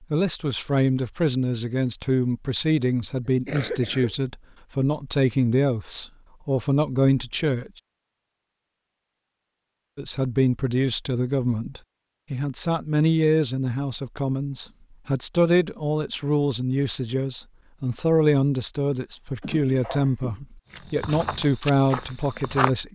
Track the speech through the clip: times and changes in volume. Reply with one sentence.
You can hear the speech from 0.1 to 7.8 s, at a steady volume; and from 9.9 to 22.9 s, at a steady volume.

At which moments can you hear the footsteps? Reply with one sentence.
You can hear the footsteps from 20.7 to 22.7 s.